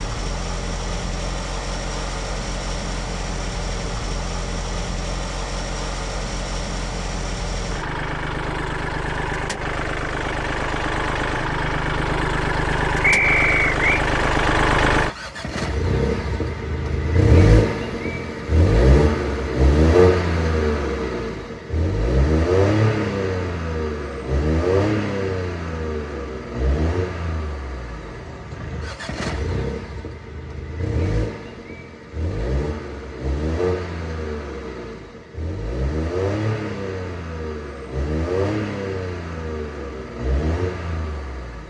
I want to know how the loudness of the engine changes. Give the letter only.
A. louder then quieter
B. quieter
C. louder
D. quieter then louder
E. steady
A.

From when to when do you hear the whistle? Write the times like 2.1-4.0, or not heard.
13.0-14.1.